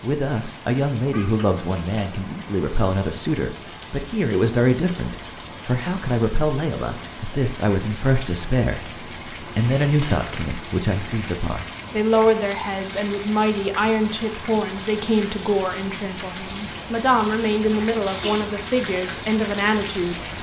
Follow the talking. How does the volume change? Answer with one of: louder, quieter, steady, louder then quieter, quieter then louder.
steady.